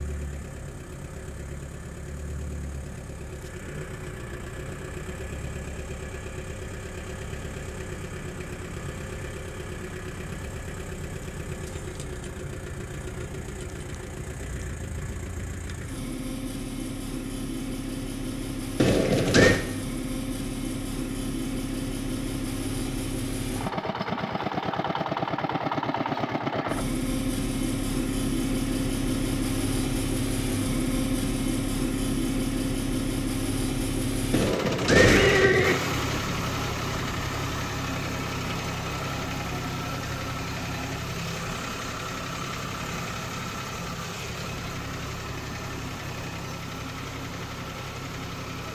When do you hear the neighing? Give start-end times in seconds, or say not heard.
18.8-19.6, 34.3-35.8.